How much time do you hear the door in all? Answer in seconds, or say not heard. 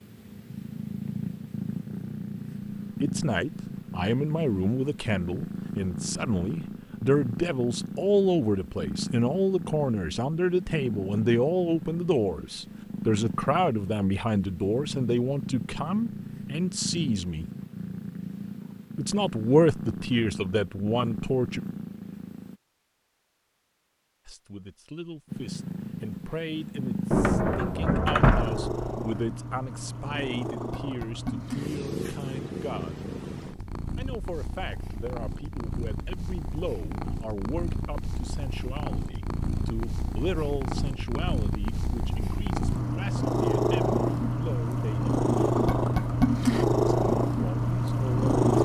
2 s.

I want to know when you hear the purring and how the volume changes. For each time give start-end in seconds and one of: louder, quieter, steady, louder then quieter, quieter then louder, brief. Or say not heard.
0.0-22.6 steady
25.2-48.6 louder.